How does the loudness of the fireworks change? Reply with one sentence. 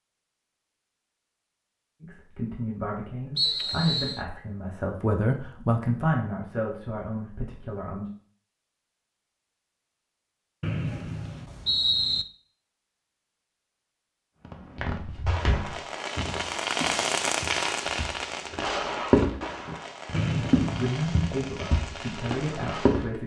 The volume of the fireworks goes up, then down.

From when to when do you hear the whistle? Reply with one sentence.
You can hear the whistle from 3.4 to 4.2 s, from 10.6 to 12.2 s and from 20.1 to 20.9 s.